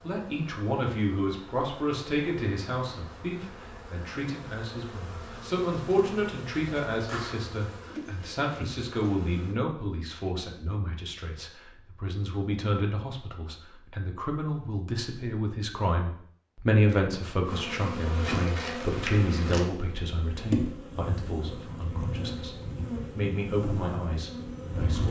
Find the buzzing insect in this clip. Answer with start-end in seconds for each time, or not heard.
0.0-9.6, 17.4-25.0.